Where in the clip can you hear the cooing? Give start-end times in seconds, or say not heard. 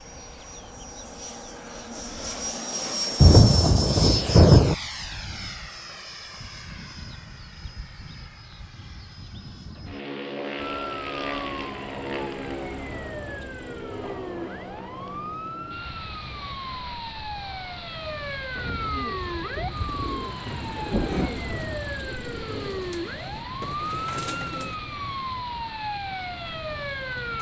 18.9-24.8.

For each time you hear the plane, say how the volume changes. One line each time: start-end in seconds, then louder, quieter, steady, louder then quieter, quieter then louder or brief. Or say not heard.
0.0-27.3 quieter.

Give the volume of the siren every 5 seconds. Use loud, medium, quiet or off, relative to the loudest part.
off, off, medium, loud, loud, loud.